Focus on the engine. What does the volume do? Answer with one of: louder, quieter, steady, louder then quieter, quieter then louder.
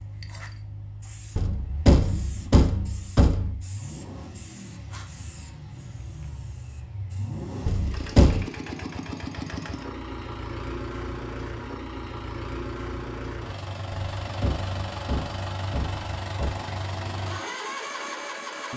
louder.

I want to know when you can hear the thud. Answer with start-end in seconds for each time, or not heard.
1.4-3.6, 7.7-8.4, 13.9-16.6.